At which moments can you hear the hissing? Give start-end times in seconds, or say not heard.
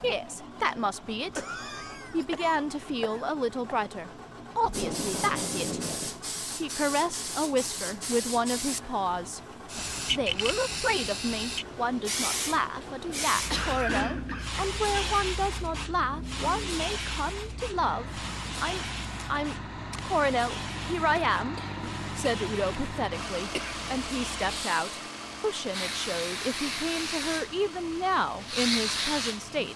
4.7-29.7.